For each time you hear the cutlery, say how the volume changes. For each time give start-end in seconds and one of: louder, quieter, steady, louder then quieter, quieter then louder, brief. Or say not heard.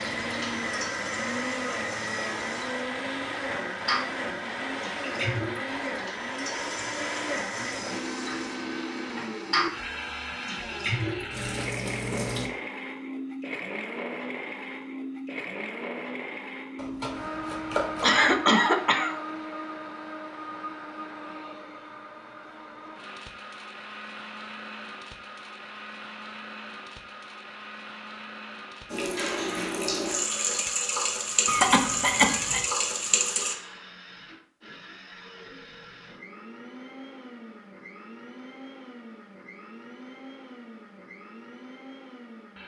not heard.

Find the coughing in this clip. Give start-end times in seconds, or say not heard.
18.0-19.1, 31.4-32.6.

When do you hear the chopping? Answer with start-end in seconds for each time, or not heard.
16.8-18.4.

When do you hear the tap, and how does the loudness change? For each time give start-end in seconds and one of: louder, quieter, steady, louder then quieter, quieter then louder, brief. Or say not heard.
0.0-12.5 louder
28.9-33.5 steady.